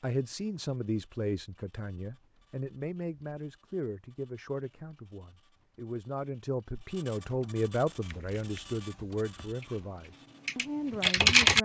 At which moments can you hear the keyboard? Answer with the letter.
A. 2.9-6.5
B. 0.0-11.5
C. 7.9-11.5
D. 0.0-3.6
C.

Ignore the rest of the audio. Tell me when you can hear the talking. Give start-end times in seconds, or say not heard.
0.0-11.5.